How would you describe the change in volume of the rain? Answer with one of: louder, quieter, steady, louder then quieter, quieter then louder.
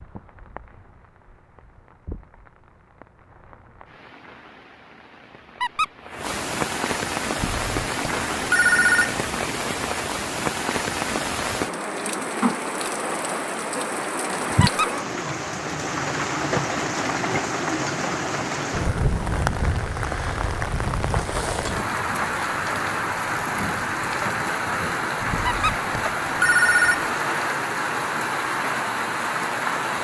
louder.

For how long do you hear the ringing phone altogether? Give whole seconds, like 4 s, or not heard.
4 s.